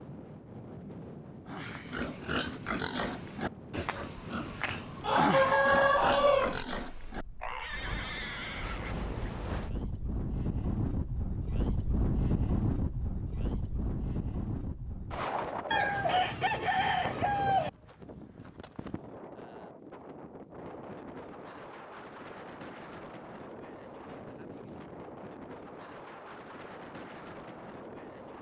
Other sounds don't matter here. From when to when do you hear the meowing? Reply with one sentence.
You can't hear the meowing here.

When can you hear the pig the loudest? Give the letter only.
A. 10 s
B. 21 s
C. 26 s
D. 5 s
D.